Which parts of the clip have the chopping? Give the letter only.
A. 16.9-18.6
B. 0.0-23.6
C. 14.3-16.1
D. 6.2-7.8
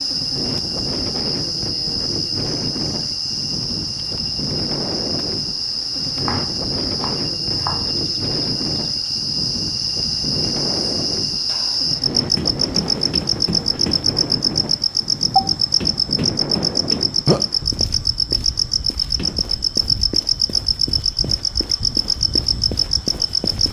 D.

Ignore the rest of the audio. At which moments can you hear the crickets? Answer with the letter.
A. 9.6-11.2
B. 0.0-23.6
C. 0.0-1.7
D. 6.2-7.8
B.